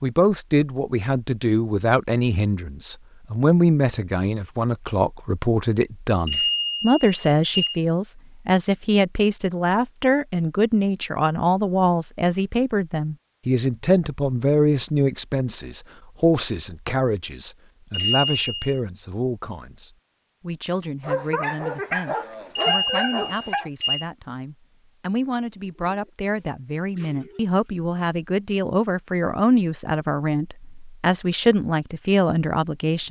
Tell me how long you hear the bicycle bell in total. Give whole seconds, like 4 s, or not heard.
4 s.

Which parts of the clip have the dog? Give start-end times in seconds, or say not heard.
21.0-23.7.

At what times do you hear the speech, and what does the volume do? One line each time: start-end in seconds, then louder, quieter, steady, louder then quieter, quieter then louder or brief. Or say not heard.
0.0-33.0 quieter then louder.